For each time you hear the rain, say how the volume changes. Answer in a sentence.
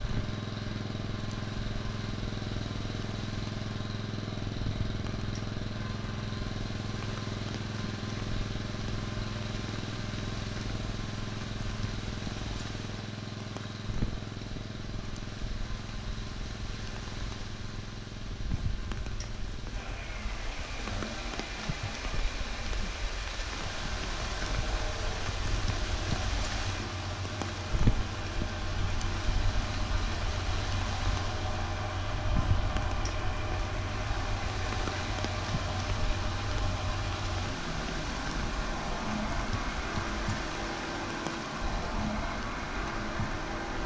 You can hear the rain from 0.0 to 43.8 s, getting louder.